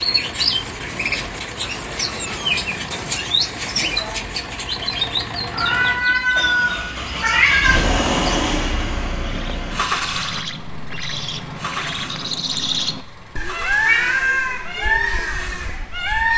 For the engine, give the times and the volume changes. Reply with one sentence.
The engine can be heard from 0.0 to 16.3 s, getting louder then quieter.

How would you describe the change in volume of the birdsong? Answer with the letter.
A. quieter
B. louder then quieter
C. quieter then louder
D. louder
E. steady
C.